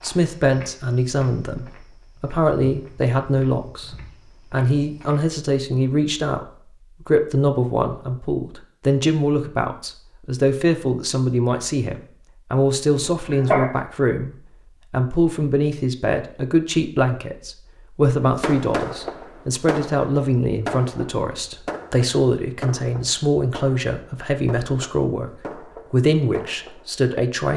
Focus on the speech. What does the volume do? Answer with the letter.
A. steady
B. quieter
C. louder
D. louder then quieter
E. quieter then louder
A.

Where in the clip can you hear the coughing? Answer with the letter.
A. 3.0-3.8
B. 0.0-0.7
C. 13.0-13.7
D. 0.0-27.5
C.